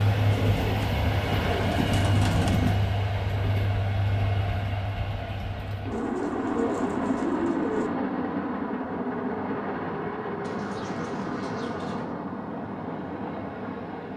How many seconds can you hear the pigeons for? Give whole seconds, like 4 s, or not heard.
6 s.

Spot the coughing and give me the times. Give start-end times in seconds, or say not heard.
not heard.